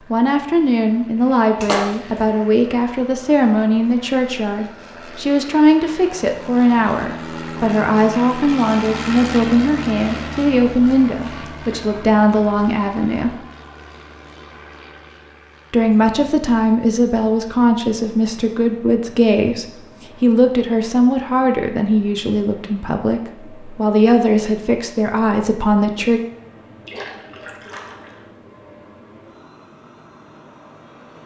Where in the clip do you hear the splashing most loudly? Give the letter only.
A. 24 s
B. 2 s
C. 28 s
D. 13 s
B.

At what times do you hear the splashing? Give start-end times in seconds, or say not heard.
1.6-2.3, 26.9-28.2.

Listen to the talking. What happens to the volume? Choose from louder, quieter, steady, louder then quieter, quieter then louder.
steady.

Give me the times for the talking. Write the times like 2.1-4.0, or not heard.
0.1-13.3, 15.7-26.2.